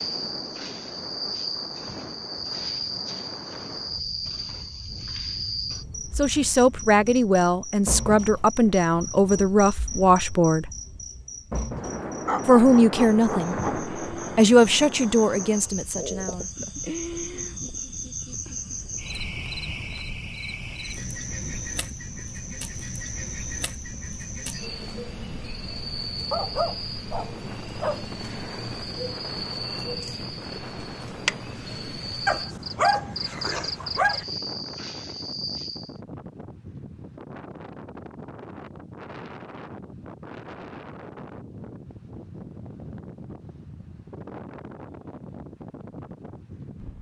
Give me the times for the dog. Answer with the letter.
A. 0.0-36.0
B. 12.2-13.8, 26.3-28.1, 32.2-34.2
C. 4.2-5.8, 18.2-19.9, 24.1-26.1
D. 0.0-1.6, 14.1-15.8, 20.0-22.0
B.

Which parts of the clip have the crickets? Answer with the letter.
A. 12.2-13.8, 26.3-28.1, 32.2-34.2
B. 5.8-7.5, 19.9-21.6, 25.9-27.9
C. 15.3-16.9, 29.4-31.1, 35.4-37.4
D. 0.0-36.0
D.